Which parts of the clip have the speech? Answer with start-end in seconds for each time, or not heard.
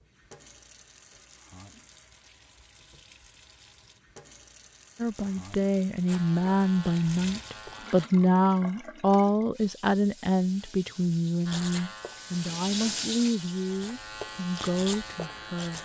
5.0-15.7.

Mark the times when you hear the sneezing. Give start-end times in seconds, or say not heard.
not heard.